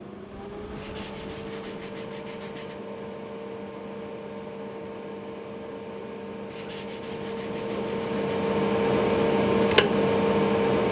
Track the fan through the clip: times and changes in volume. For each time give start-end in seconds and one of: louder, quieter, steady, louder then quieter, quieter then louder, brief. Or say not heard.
0.0-10.8 louder.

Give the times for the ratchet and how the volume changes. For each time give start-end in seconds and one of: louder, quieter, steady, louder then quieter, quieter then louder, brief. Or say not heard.
not heard.